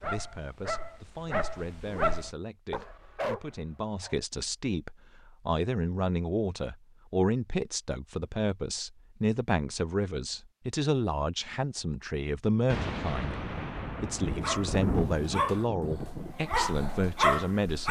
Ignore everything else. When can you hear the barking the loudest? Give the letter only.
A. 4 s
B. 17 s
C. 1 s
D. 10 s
B.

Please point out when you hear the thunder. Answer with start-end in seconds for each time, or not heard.
12.7-16.4.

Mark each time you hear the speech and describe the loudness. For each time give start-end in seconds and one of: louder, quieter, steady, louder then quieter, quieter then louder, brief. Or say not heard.
0.0-17.8 louder.